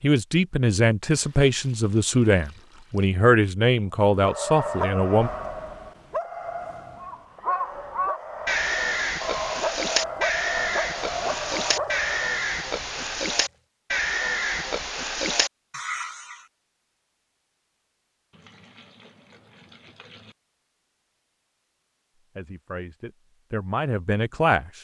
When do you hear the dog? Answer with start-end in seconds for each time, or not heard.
4.1-12.3.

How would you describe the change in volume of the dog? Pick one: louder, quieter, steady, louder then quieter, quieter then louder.
quieter then louder.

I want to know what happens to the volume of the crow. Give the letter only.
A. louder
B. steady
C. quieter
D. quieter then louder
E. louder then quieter
B.